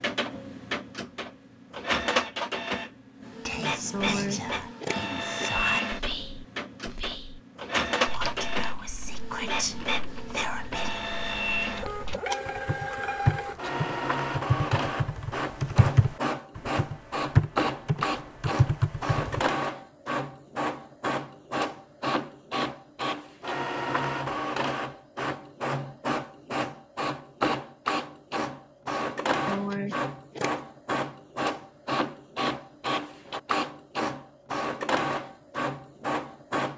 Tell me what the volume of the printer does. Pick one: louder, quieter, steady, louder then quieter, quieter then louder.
steady.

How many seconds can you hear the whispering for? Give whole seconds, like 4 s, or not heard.
8 s.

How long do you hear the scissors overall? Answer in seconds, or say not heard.
3 s.